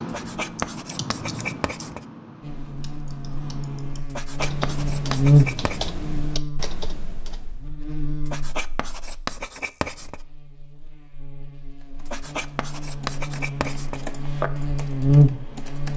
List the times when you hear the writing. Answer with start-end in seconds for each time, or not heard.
0.1-2.0, 4.1-5.9, 8.2-10.2, 12.1-14.1.